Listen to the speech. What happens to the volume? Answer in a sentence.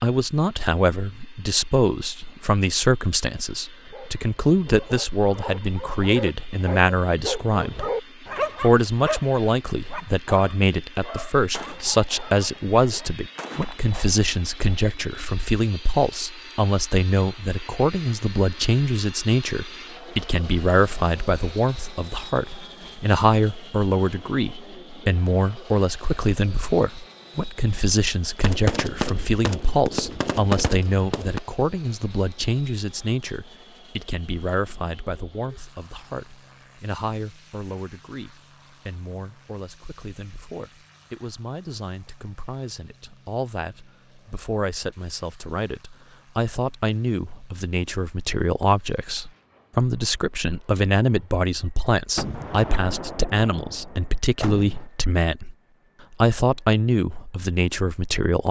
The loudness of the speech goes down, then up.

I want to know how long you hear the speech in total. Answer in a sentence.
The speech can be heard for 58 seconds in total.